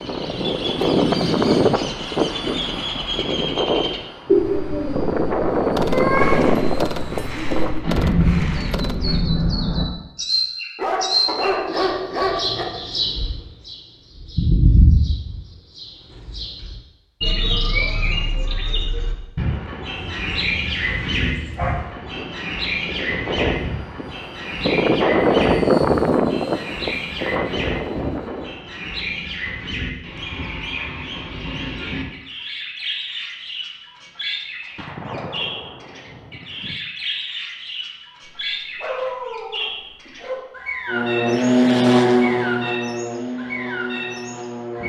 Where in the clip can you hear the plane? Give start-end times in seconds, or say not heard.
0.0-7.7, 22.0-28.5, 40.9-44.8.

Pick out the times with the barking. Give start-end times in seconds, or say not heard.
10.8-12.7, 19.9-21.9, 38.8-40.4.